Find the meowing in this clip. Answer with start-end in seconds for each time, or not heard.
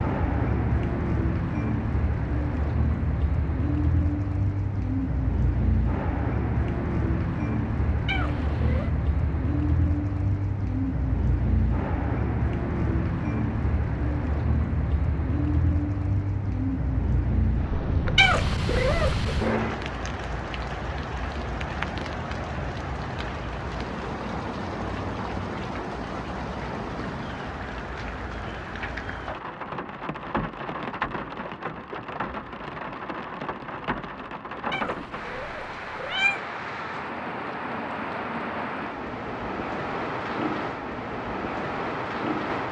8.1-8.9, 18.1-19.6, 34.7-36.4.